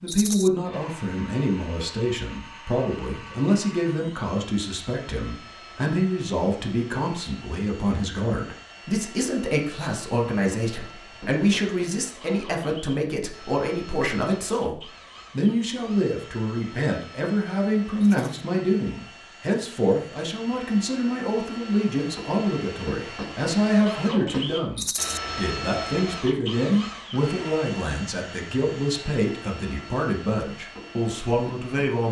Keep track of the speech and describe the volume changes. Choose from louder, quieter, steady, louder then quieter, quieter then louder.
steady.